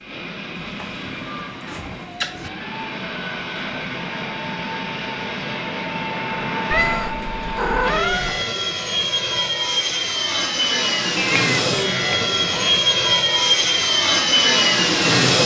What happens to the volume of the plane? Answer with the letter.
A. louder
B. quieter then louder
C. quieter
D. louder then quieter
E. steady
A.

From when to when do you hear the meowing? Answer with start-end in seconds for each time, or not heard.
0.6-2.5, 6.7-8.4, 11.2-12.8.